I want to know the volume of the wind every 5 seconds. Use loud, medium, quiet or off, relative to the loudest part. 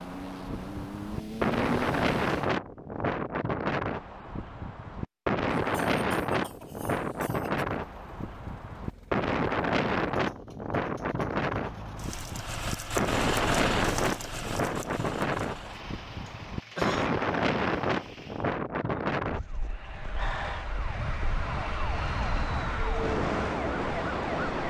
loud, loud, loud, loud, medium.